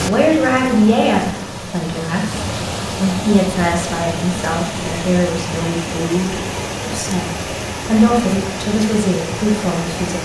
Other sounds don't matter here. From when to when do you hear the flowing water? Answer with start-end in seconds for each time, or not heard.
0.0-10.1.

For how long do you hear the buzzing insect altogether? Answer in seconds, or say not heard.
not heard.